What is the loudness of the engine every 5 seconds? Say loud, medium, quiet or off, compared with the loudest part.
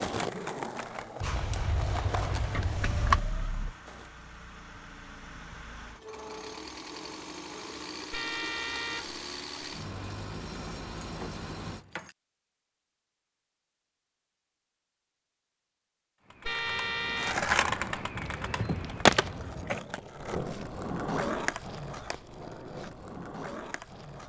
medium, loud, loud, off, off.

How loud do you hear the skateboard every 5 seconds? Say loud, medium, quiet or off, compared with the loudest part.
medium, off, off, loud, medium.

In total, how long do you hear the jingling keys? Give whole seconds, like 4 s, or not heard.
5 s.